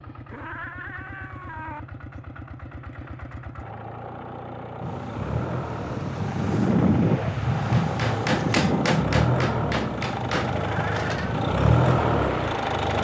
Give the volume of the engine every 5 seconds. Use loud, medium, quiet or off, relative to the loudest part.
quiet, medium, loud.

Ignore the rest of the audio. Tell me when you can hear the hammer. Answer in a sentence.
You can hear the hammer from 7.5 to 11.3 s.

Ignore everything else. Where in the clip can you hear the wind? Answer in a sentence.
The wind can be heard from 4.8 to 13.0 s.